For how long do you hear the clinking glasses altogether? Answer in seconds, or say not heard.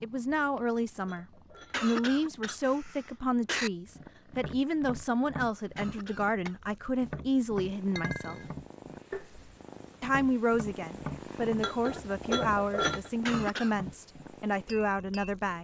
4 s.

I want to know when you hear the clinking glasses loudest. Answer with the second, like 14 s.
13 s.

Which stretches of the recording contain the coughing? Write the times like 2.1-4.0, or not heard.
1.7-3.7, 5.8-6.8, 13.2-13.8.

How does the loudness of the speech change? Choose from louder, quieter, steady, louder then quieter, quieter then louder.
steady.